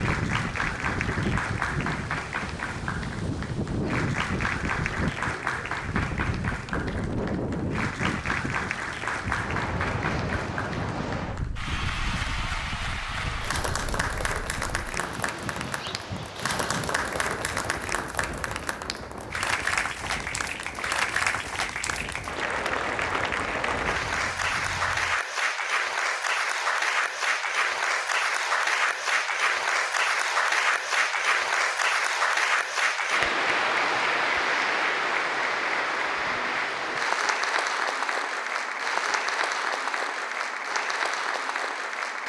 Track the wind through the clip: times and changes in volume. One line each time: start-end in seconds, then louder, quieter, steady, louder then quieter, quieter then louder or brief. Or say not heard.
0.0-25.2 quieter.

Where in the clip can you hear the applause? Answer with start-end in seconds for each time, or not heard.
0.0-42.2.